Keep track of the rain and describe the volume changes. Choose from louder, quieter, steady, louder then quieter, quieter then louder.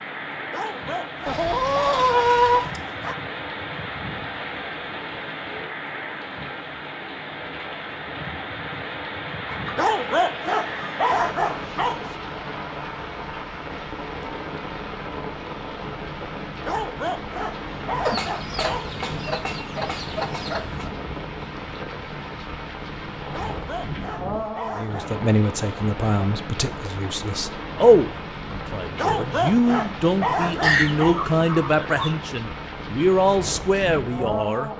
steady.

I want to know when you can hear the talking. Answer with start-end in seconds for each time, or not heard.
24.8-34.7.